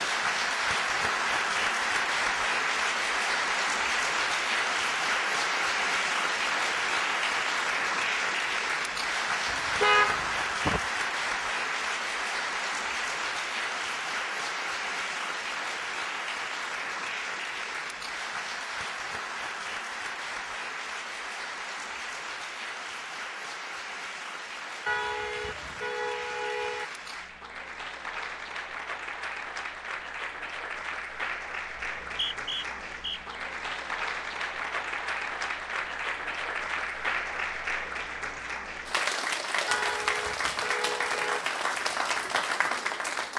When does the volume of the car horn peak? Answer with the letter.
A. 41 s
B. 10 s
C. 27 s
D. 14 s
B.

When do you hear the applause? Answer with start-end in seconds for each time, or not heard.
0.0-43.3.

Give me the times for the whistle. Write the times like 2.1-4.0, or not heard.
31.8-33.4.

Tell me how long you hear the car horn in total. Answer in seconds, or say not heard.
5 s.